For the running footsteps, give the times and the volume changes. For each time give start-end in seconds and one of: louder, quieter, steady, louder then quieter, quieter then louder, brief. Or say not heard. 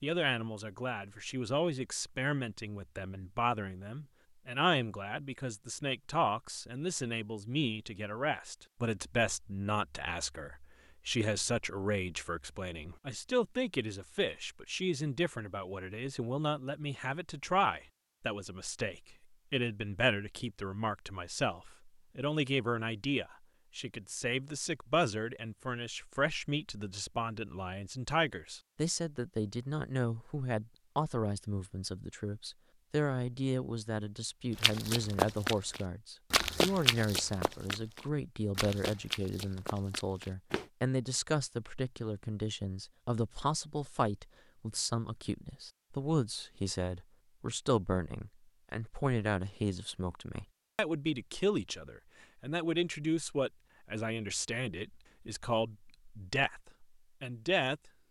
34.5-40.6 quieter.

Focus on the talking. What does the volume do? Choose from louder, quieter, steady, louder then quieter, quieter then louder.
steady.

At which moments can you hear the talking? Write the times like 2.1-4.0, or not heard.
0.0-57.9.